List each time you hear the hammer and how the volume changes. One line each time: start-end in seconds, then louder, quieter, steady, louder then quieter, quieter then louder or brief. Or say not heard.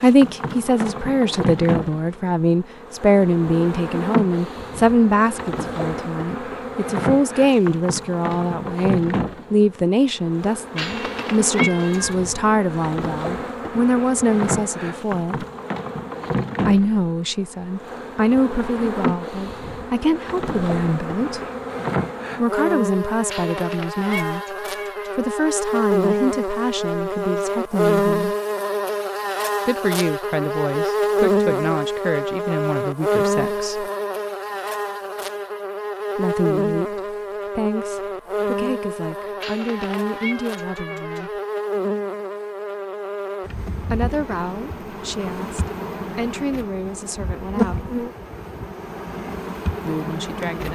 not heard.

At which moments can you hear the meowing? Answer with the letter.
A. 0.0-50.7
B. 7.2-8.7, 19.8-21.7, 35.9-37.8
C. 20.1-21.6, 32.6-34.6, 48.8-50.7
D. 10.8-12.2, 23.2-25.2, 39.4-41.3
D.